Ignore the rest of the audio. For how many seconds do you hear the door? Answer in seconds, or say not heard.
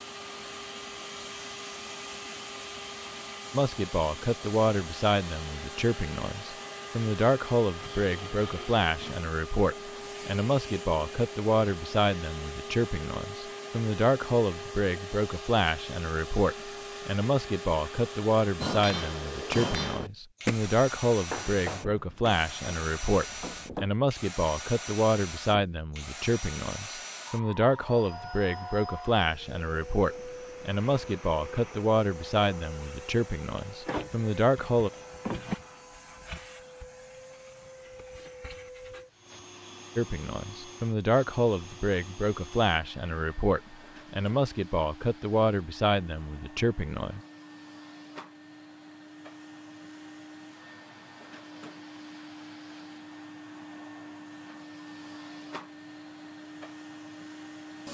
2 s.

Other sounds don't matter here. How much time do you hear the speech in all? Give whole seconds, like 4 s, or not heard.
39 s.